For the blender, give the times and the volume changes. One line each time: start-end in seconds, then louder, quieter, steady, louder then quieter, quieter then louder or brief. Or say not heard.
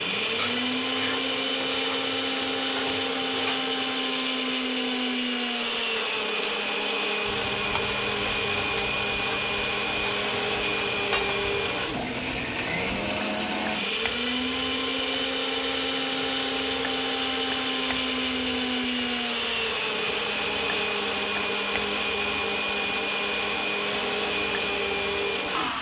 0.0-25.7 steady.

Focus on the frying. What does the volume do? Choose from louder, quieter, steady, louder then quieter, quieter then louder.
steady.